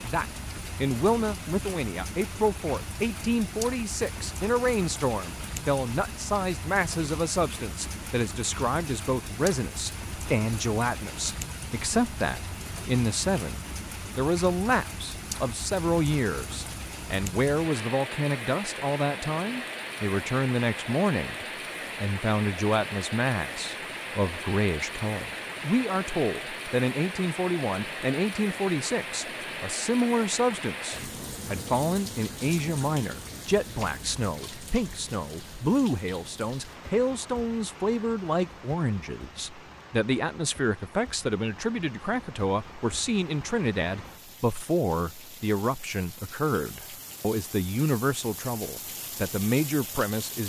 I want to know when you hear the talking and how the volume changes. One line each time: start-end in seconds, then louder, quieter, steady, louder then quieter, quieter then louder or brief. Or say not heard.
0.0-50.4 steady.